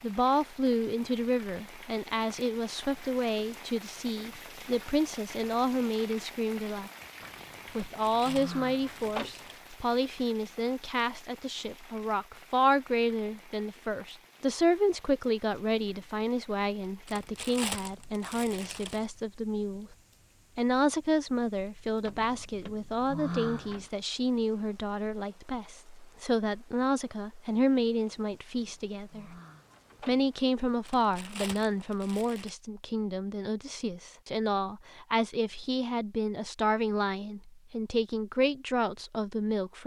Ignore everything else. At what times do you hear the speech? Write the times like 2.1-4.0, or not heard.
0.0-6.9, 7.8-19.9, 20.6-29.3, 30.1-39.8.